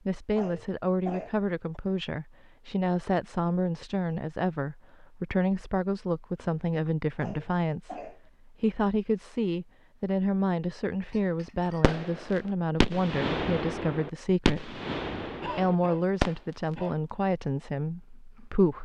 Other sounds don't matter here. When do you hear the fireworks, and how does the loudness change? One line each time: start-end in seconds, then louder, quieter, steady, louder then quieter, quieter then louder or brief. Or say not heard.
11.8-16.4 quieter.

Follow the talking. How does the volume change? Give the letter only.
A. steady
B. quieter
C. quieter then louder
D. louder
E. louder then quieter
A.